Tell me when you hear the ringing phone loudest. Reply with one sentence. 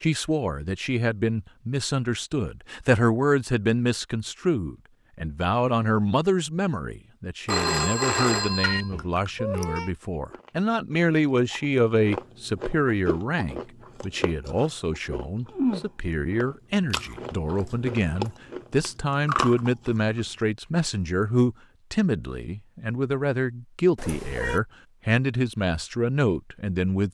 The loudest moment of the ringing phone is at 8 seconds.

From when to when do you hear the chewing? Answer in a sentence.
You can hear the chewing from 8.9 to 20.4 s.